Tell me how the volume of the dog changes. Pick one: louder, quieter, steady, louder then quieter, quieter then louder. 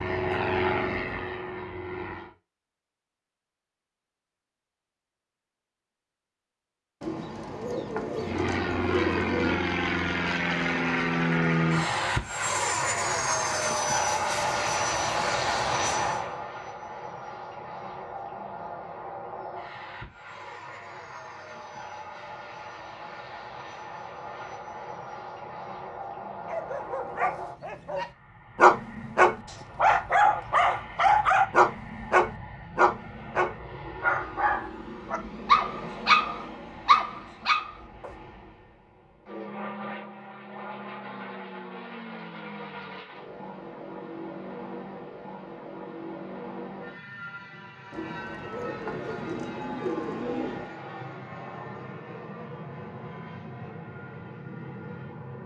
steady.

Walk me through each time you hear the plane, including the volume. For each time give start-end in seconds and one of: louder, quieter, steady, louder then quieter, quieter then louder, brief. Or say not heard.
0.0-2.3 brief
8.2-55.4 quieter.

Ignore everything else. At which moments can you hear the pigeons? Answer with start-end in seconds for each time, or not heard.
7.0-9.7, 47.9-50.7.